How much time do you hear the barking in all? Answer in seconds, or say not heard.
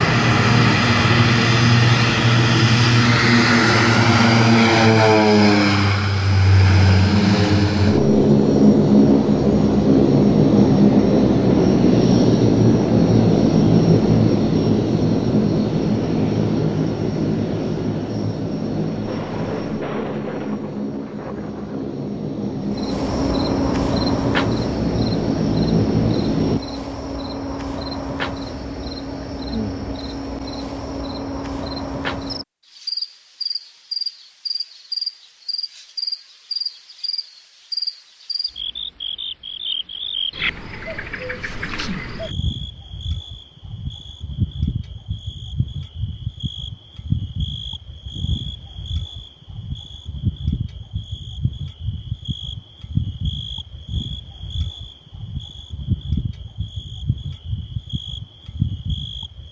not heard.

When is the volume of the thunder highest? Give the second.
20 s.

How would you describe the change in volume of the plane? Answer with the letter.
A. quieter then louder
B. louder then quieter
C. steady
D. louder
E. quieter
E.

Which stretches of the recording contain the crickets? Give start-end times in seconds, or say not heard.
22.6-59.4.